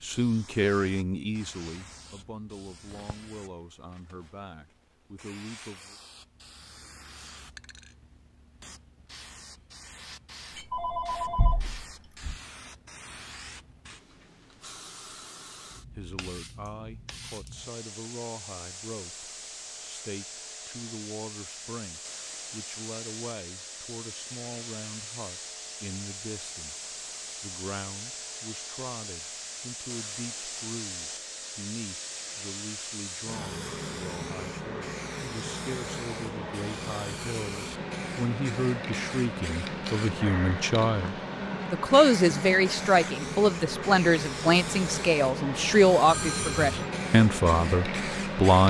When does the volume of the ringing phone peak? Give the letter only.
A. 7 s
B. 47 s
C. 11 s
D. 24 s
C.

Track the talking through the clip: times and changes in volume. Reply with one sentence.
The talking can be heard from 0.0 to 6.0 s, getting quieter; and from 15.9 to 48.6 s, getting louder.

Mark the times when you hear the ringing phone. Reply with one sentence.
You can hear the ringing phone from 10.6 to 12.3 s and from 46.0 to 46.9 s.